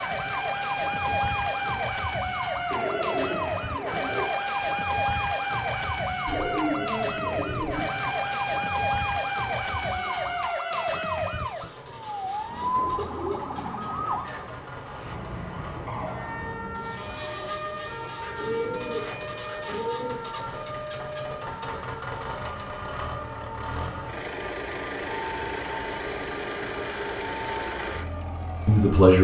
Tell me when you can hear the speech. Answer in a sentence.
The speech can be heard from 28.6 to 29.1 s.